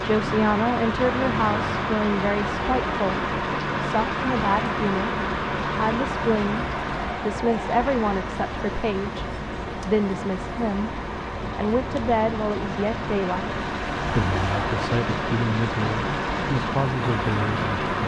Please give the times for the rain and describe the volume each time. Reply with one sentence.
The rain can be heard from 0.0 to 18.0 s, getting quieter then louder.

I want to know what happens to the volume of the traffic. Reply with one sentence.
The loudness of the traffic stays about the same.